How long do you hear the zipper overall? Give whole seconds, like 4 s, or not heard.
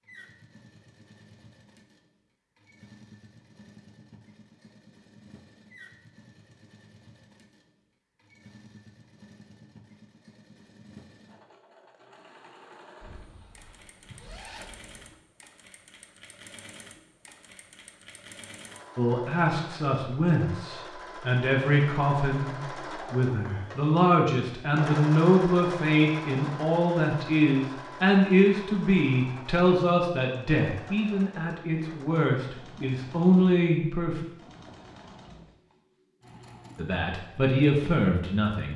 2 s.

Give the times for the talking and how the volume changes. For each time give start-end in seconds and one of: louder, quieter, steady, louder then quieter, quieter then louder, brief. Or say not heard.
18.9-34.2 steady
36.8-38.7 brief.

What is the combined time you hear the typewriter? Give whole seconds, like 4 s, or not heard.
not heard.